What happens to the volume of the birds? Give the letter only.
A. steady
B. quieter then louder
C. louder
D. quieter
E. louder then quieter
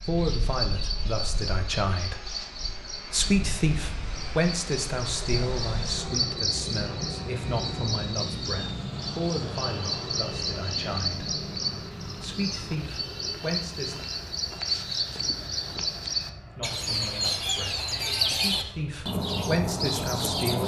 C.